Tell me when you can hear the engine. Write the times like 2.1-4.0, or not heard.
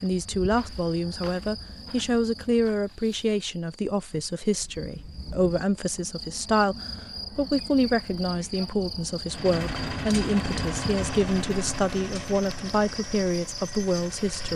9.2-14.5.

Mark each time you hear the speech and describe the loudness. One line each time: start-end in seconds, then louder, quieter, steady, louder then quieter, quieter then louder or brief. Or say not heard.
0.0-14.5 steady.